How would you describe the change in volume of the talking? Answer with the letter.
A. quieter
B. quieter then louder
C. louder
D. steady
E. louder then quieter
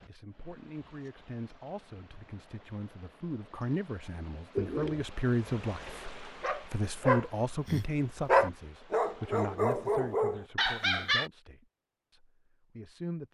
E.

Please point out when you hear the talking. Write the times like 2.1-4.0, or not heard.
0.1-13.2.